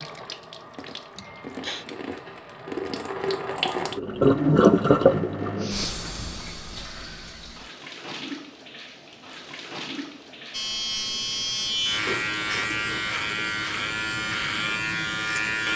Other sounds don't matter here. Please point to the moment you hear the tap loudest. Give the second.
5 s.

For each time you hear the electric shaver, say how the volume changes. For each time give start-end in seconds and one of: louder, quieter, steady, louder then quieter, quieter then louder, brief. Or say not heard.
10.5-15.7 steady.